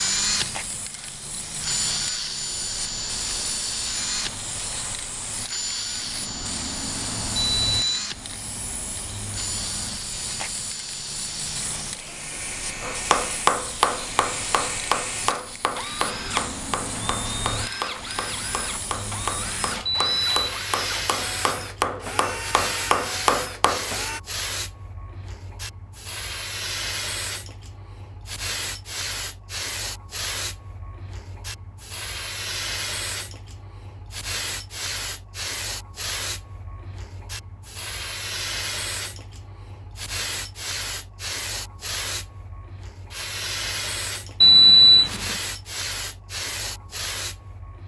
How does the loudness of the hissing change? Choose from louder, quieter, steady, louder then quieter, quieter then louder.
steady.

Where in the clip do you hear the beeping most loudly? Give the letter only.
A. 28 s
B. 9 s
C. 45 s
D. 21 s
C.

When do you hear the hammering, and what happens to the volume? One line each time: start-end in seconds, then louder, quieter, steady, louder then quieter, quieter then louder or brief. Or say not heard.
12.8-23.9 quieter then louder.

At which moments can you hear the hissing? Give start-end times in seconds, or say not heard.
0.0-47.8.